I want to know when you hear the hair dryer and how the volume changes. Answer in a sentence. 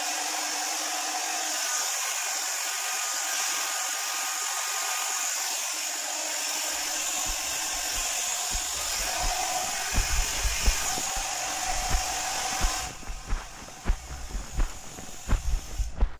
You can hear the hair dryer from 0.0 to 16.1 s, getting quieter.